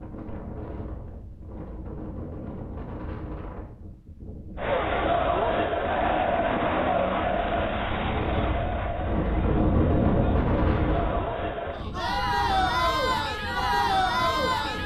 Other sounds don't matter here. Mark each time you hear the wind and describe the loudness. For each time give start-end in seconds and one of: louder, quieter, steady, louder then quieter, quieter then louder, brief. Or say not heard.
0.0-14.8 louder then quieter.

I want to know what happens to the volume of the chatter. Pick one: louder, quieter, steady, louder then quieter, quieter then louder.
quieter then louder.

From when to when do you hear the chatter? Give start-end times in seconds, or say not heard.
4.5-14.8.